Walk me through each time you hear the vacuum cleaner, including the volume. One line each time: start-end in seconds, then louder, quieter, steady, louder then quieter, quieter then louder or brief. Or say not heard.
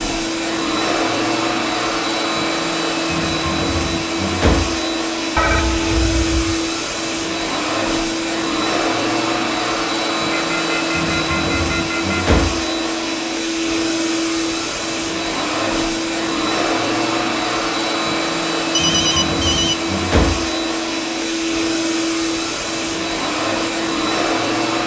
0.0-24.8 steady.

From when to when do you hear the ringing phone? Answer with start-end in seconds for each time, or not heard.
5.3-6.6, 10.3-12.3, 18.7-19.8.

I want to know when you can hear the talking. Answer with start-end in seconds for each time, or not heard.
not heard.